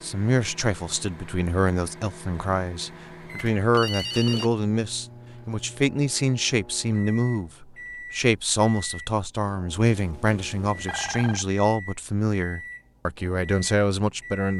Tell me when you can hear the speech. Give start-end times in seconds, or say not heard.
0.0-14.5.